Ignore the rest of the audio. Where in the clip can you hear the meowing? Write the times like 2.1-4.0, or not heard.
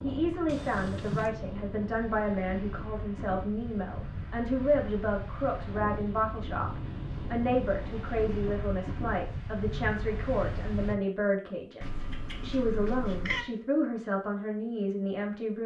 0.5-1.3, 11.8-13.4.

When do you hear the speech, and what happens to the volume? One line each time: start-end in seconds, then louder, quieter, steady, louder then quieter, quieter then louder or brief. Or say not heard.
0.0-15.6 steady.